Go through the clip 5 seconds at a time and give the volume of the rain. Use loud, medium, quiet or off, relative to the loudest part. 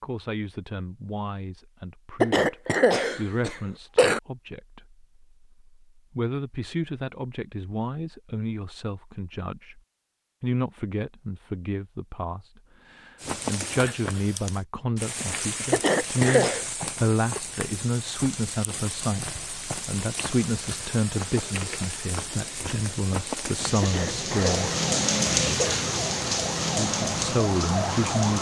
off, off, medium, medium, medium, loud.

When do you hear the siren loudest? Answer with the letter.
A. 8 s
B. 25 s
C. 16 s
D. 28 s
D.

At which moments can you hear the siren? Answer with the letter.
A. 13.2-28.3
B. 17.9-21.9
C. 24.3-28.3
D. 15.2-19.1
C.